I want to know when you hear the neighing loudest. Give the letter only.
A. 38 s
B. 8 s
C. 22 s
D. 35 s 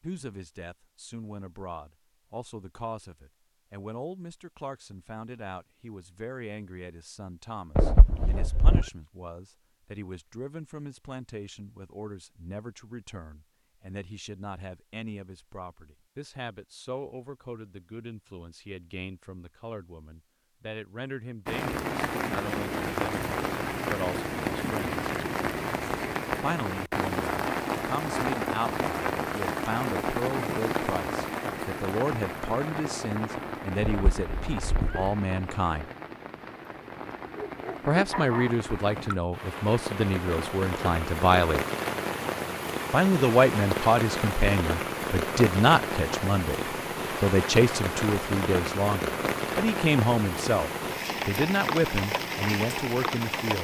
B.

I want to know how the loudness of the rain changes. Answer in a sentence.
The loudness of the rain goes down, then up.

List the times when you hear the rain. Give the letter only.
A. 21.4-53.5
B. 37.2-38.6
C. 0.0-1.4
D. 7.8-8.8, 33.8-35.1
A.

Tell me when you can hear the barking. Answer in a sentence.
The barking can be heard from 37.2 to 38.6 s.